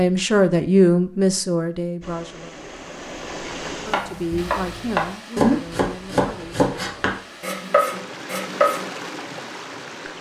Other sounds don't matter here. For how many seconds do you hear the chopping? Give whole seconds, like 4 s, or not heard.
5 s.